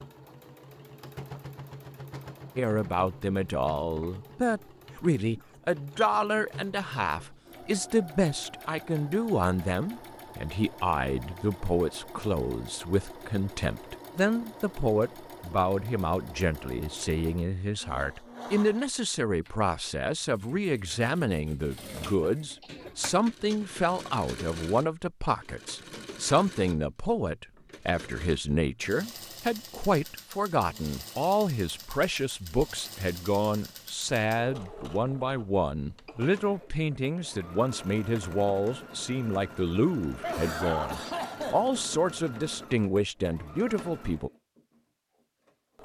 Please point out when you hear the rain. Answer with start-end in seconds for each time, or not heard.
not heard.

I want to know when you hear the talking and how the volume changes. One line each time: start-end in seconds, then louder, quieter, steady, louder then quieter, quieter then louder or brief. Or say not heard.
2.5-44.3 steady.